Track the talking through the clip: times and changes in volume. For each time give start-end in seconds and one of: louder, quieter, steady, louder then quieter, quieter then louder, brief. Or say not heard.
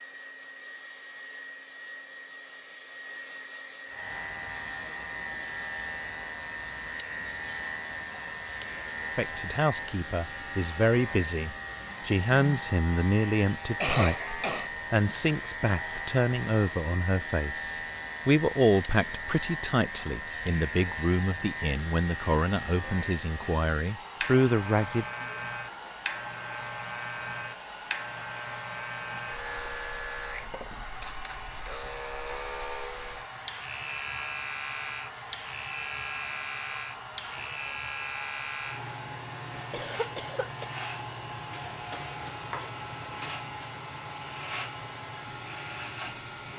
9.2-25.1 steady.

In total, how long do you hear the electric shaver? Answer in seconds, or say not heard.
43 s.